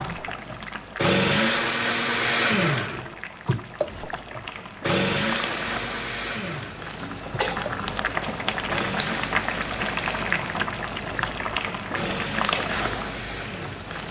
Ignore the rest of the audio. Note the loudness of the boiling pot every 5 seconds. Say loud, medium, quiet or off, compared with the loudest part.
medium, loud, loud.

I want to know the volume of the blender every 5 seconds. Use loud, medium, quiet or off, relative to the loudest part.
loud, medium, medium.